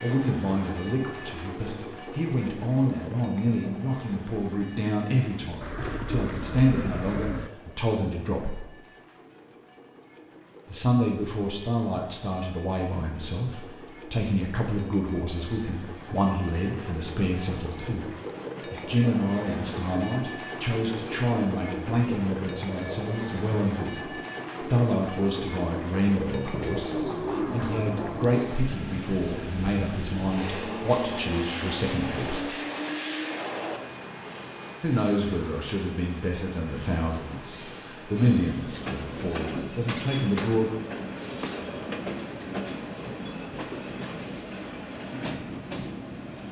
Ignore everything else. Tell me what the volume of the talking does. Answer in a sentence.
The volume of the talking stays about the same.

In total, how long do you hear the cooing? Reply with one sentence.
The cooing can be heard for 4 seconds in total.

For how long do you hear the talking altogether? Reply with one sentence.
The talking can be heard for 36 seconds in total.